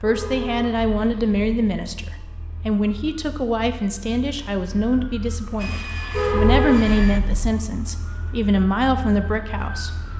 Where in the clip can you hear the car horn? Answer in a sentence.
The car horn can be heard from 0.0 to 1.4 s and from 6.1 to 7.6 s.